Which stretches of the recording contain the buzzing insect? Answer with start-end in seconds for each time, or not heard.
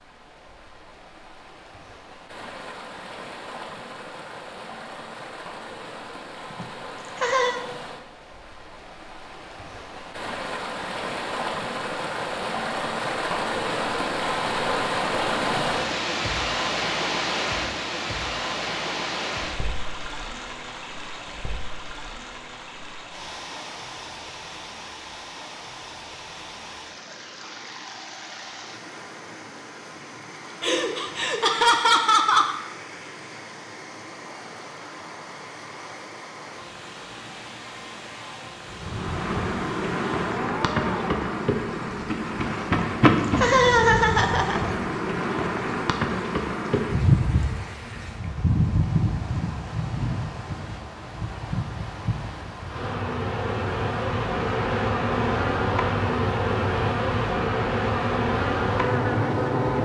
38.7-59.8.